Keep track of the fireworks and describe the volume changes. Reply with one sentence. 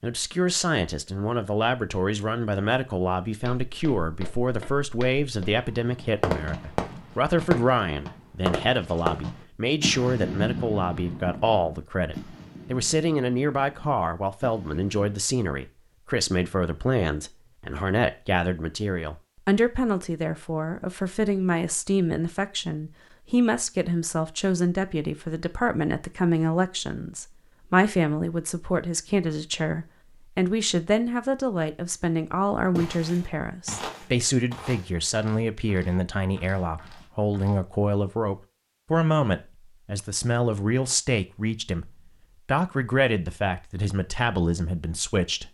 The volume of the fireworks goes down.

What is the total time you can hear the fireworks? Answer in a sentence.
The fireworks can be heard for 9 seconds in total.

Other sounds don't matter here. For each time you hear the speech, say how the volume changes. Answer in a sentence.
The speech can be heard from 0.0 to 45.4 s, at a steady volume.